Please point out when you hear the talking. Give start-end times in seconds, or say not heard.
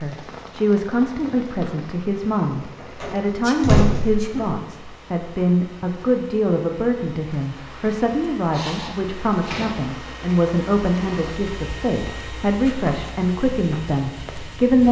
0.0-14.8.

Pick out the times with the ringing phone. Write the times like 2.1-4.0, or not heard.
not heard.